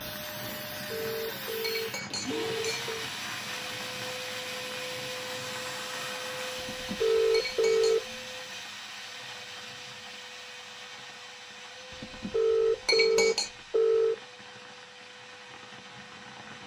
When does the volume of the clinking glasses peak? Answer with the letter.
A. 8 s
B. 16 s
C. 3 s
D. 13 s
D.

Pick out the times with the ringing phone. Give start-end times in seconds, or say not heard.
0.8-3.1, 6.7-8.0, 11.9-14.2.